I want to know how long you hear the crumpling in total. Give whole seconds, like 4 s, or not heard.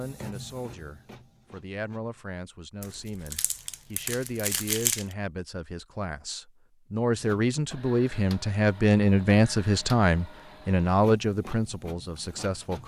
2 s.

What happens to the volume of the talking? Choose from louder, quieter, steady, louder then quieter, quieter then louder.
louder.